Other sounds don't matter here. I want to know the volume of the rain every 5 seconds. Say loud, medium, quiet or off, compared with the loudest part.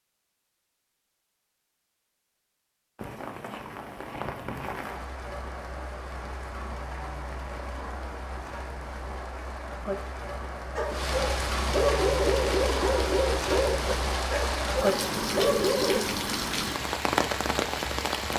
medium, medium, loud, loud.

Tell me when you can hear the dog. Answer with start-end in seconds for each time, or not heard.
10.8-16.0.